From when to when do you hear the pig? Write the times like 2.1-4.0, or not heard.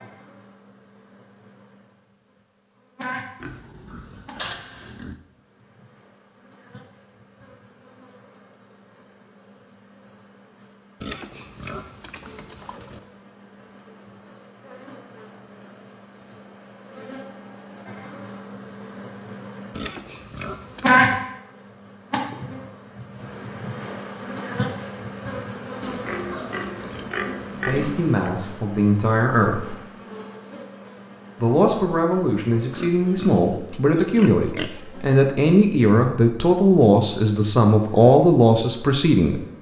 3.4-5.2, 11.0-13.0, 19.7-21.1, 25.8-28.1, 32.8-35.2.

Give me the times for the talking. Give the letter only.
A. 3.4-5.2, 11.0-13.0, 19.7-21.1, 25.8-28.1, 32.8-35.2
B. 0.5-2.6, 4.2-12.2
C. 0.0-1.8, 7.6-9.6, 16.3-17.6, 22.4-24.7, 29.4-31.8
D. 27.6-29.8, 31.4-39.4
D.